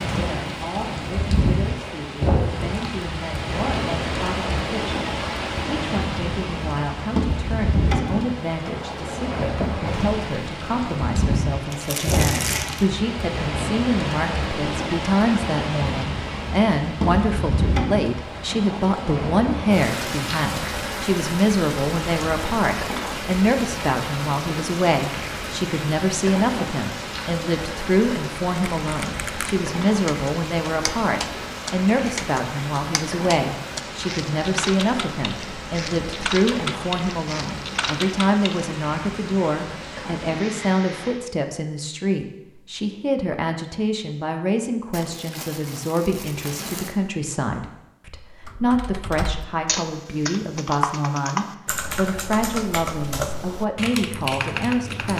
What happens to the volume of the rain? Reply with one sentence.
The loudness of the rain goes down.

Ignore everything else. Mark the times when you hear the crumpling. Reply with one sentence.
You can hear the crumpling from 11.7 to 12.8 s and from 44.9 to 47.0 s.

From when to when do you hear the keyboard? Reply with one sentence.
The keyboard can be heard from 28.8 to 38.7 s and from 48.4 to 55.1 s.